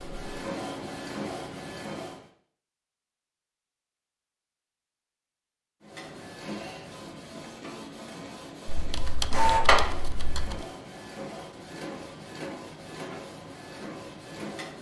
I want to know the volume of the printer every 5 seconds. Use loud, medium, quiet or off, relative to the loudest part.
medium, loud, medium.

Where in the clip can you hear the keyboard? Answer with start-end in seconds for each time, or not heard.
8.7-10.7.